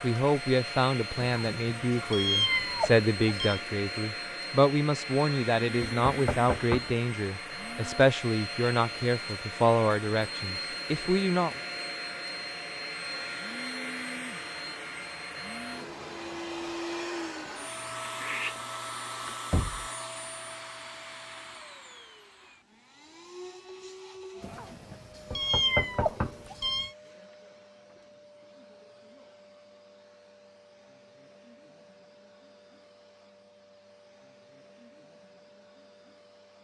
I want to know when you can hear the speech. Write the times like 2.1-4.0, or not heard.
0.0-11.6.